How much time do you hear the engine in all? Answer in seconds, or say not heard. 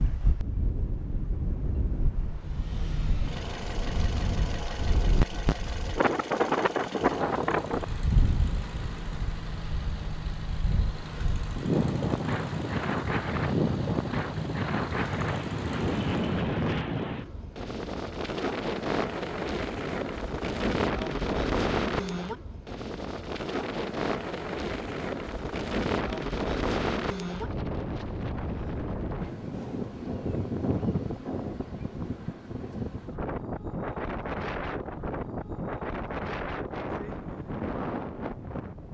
14 s.